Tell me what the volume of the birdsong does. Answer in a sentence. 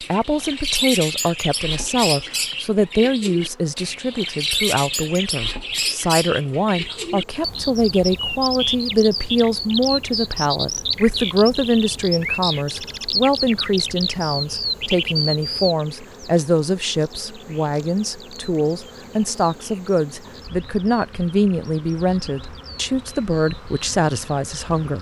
The volume of the birdsong goes down.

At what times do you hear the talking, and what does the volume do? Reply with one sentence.
You can hear the talking from 0.1 to 24.9 s, at a steady volume.